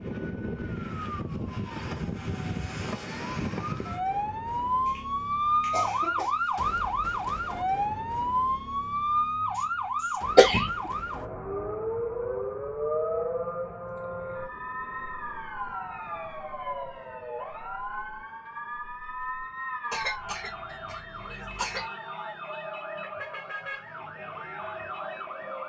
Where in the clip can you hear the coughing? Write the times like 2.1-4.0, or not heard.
4.8-6.3, 10.3-10.9, 19.9-21.9.